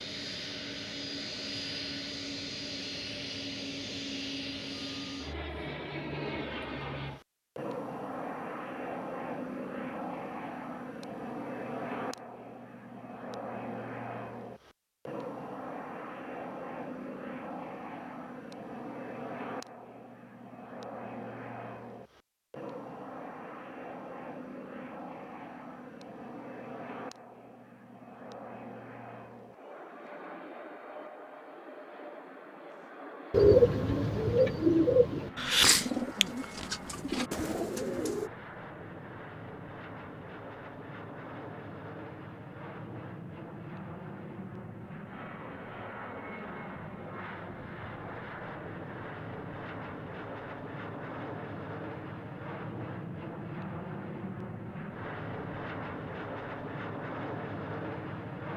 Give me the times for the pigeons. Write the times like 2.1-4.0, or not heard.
33.3-38.3.